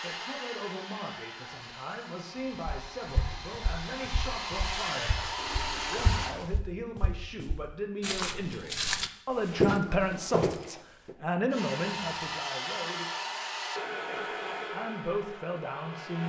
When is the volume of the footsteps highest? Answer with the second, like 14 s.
10 s.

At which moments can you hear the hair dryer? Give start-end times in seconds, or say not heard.
0.0-6.3, 11.5-16.2.